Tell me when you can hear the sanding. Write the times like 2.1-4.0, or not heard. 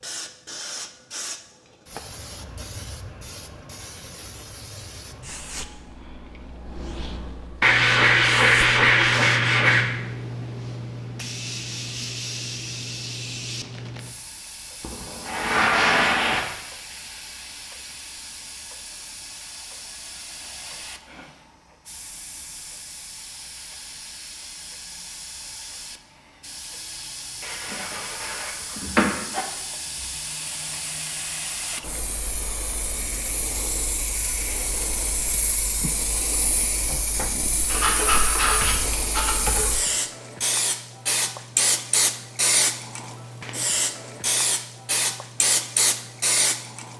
7.6-9.8, 14.8-16.4, 27.4-29.4, 37.6-39.7.